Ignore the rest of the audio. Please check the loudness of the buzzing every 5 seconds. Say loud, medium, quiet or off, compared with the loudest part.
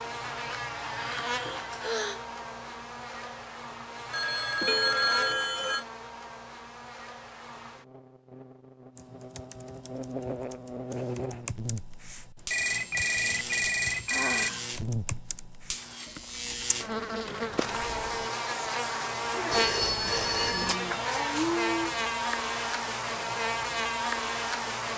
medium, quiet, medium, loud, loud.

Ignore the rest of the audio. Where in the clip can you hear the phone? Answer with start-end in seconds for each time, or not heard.
4.1-5.8, 12.5-14.5, 19.5-20.8.